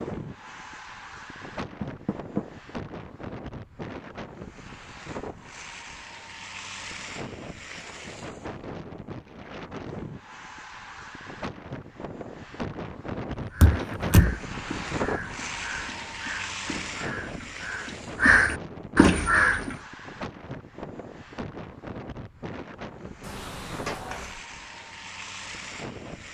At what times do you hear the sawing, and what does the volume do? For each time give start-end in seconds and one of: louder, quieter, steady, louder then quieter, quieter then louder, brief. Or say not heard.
not heard.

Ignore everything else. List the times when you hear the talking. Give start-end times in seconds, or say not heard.
not heard.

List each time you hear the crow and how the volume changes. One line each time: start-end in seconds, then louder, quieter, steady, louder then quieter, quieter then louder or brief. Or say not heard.
13.3-19.8 louder.